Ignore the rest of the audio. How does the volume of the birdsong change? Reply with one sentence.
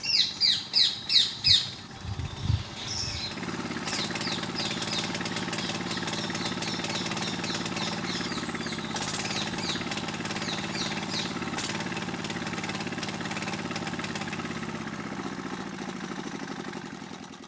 The volume of the birdsong goes down.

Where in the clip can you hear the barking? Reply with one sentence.
You can't hear the barking here.